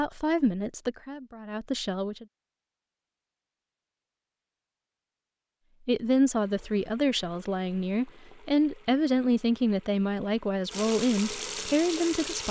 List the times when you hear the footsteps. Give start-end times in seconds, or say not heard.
not heard.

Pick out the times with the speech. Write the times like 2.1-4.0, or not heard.
0.0-2.2, 5.8-12.4.